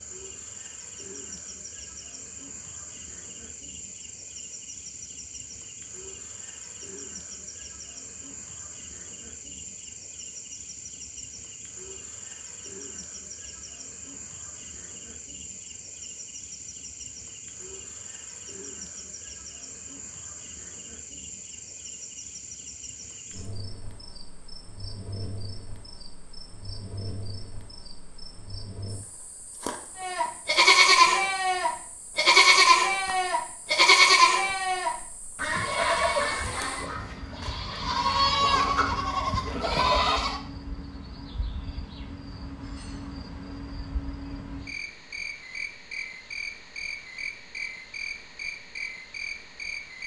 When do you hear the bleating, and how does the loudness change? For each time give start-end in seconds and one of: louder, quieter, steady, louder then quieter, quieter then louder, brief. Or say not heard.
29.9-40.4 quieter then louder.